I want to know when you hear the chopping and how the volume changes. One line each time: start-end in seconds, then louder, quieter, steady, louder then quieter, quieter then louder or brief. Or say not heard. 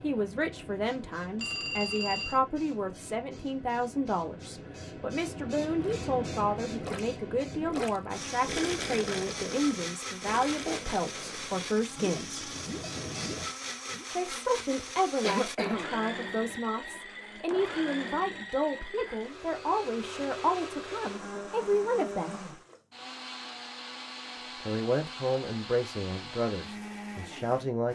not heard.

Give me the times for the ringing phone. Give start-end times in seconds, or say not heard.
1.4-2.4, 18.9-19.9.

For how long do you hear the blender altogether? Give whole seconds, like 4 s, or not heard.
20 s.